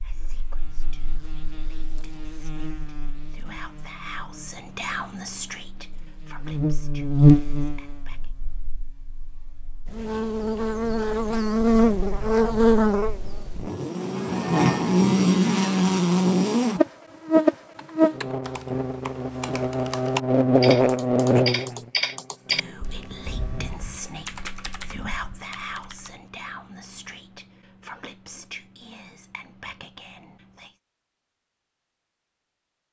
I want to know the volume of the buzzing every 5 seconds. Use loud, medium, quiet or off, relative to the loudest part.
quiet, loud, loud, loud, loud, off, off.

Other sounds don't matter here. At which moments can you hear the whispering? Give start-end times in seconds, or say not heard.
0.0-8.3, 22.4-30.8.